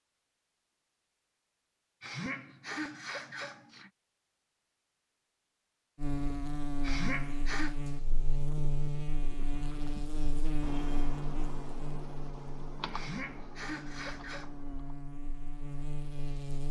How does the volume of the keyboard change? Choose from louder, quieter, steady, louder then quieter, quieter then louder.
quieter.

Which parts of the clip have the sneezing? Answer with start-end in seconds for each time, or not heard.
2.0-3.9, 6.8-7.8, 12.9-14.5.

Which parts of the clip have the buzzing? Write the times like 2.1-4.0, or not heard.
6.0-16.6.